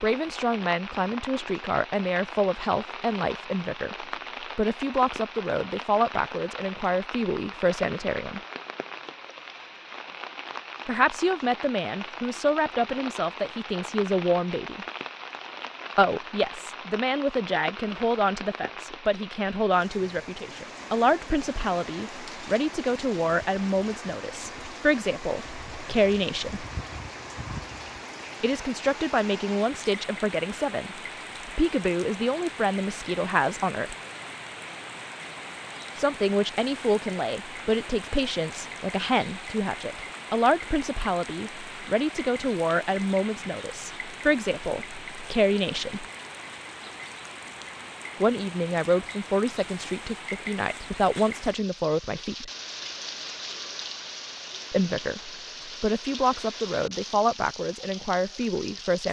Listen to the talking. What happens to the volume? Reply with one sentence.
The volume of the talking stays about the same.